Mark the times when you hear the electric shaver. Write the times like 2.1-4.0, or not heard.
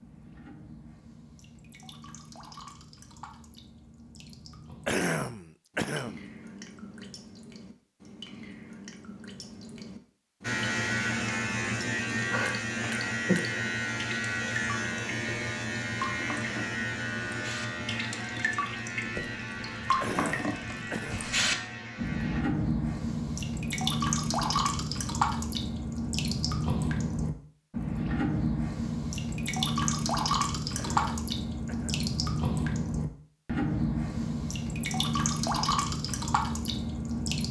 10.4-22.4.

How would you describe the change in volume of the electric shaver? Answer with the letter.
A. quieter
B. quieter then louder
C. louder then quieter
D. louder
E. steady
A.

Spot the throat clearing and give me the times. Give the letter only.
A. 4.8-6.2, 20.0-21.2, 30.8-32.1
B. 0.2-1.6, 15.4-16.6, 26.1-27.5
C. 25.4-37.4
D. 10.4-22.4
A.